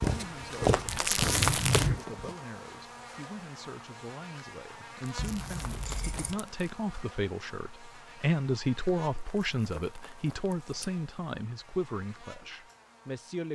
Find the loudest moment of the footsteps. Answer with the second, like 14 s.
1 s.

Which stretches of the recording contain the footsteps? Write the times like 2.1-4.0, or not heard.
0.0-2.5.